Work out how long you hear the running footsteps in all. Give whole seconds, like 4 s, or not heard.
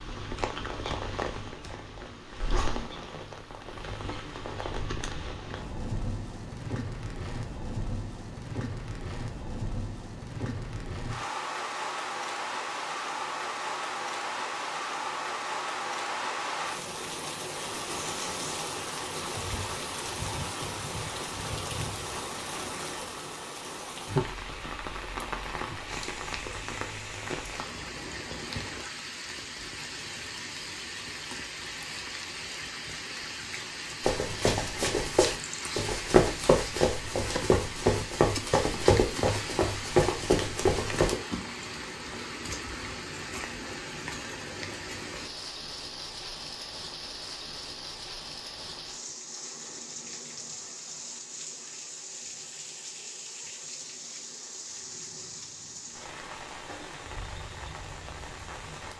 7 s.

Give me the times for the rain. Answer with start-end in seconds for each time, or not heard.
0.0-58.9.